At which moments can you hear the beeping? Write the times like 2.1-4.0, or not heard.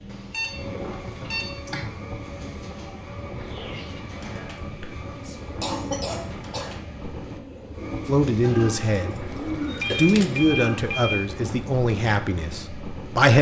0.1-1.5, 9.8-11.2.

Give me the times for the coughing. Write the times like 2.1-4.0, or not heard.
1.2-1.9, 4.5-6.8, 9.3-9.9.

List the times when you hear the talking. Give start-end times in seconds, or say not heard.
8.1-9.2, 9.9-13.3.